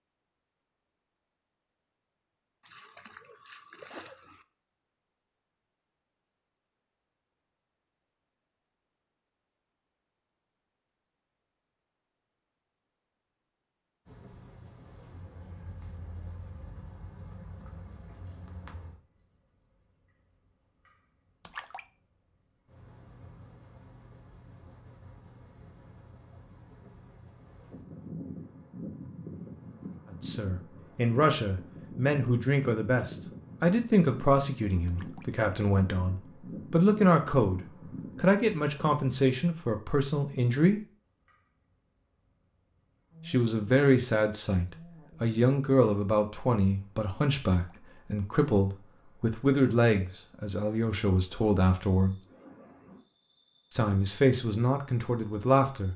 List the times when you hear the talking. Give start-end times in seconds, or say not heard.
30.2-40.8, 43.2-52.1, 53.7-55.9.